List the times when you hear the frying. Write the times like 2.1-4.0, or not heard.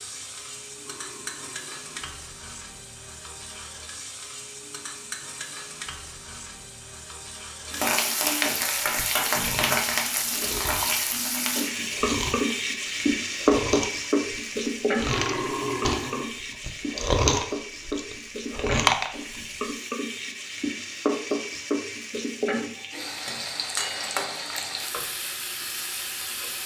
0.0-26.6.